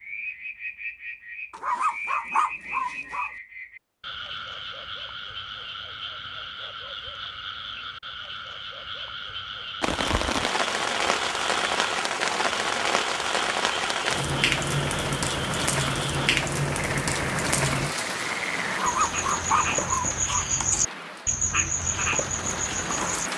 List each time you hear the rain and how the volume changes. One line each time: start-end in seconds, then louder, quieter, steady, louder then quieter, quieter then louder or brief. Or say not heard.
9.8-23.3 quieter.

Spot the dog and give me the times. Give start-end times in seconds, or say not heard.
1.5-3.3, 18.6-20.4.